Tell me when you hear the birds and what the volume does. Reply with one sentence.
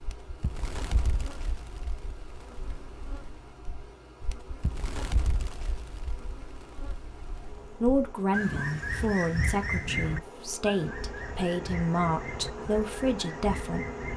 The birds can be heard from 0.0 to 14.1 s, getting louder then quieter.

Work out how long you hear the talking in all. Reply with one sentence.
You can hear the talking for 6 seconds altogether.